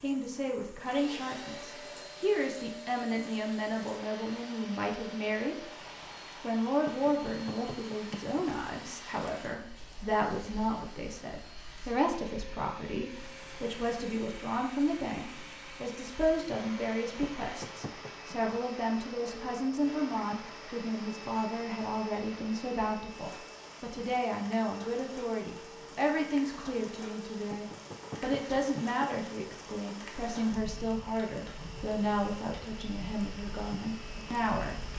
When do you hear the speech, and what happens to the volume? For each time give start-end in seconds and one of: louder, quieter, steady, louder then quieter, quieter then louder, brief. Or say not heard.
0.0-5.7 steady
6.4-34.9 steady.